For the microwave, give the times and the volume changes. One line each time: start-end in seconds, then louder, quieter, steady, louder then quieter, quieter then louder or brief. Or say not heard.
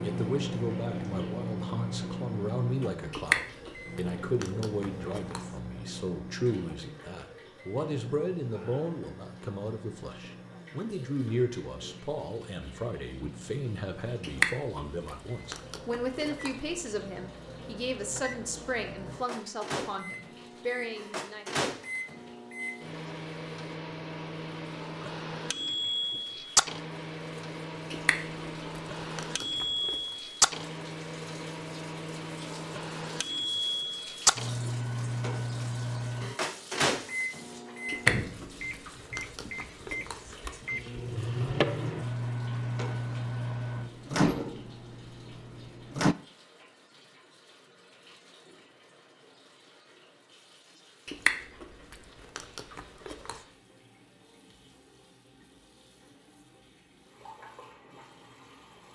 0.0-46.1 quieter then louder.